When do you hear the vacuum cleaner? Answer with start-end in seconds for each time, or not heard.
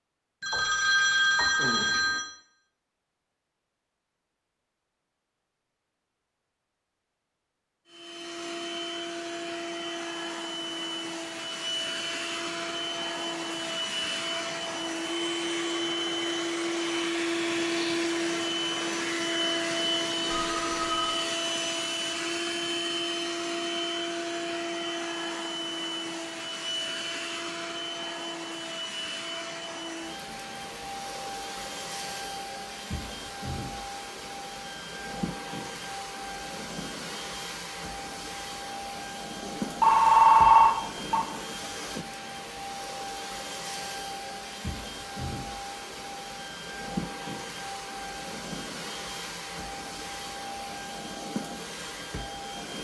7.8-52.7.